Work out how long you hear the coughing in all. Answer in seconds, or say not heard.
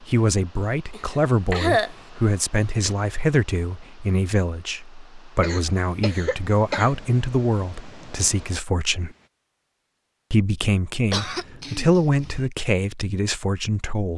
4 s.